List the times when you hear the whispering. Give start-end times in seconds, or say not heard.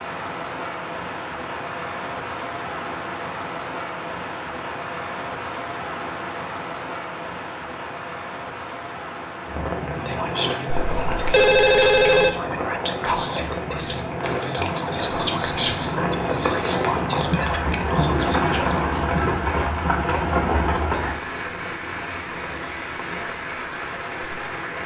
9.8-19.0.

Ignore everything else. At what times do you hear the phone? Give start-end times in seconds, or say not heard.
10.7-12.3.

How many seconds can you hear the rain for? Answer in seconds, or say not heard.
25 s.